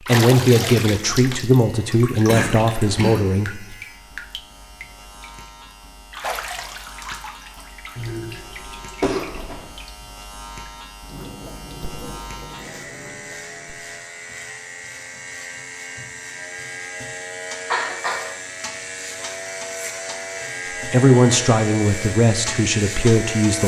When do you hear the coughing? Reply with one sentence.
You can hear the coughing from 2.2 to 3.4 s, from 8.0 to 9.7 s and from 17.7 to 18.2 s.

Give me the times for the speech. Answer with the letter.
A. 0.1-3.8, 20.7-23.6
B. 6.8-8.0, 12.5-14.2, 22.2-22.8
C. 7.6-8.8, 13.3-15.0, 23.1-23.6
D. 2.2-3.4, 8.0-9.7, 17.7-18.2
A.